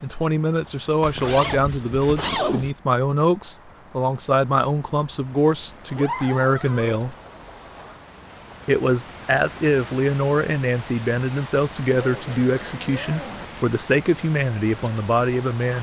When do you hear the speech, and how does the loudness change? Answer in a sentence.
The speech can be heard from 0.0 to 7.2 s, at a steady volume; and from 8.7 to 15.7 s, at a steady volume.